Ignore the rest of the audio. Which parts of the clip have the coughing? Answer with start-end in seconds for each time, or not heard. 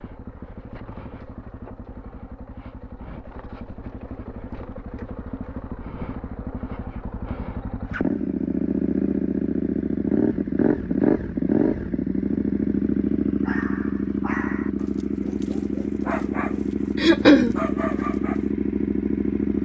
16.9-17.6.